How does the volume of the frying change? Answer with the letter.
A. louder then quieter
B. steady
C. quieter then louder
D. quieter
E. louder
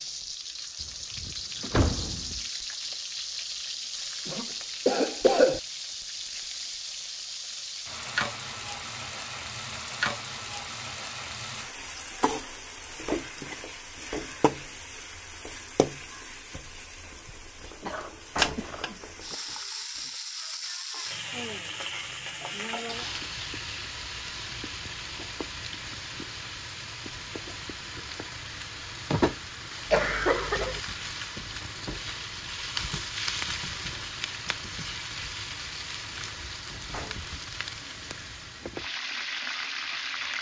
B.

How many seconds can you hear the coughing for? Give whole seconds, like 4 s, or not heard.
5 s.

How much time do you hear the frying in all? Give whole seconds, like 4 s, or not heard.
40 s.